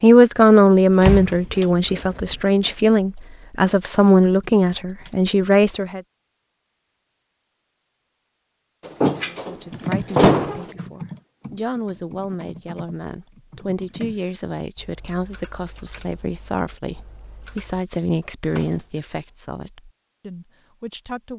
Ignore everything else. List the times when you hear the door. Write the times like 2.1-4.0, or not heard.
1.0-2.4, 8.8-10.7, 18.4-18.8.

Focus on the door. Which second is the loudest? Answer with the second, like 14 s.
10 s.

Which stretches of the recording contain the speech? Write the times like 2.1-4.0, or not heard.
0.0-6.0, 9.4-21.3.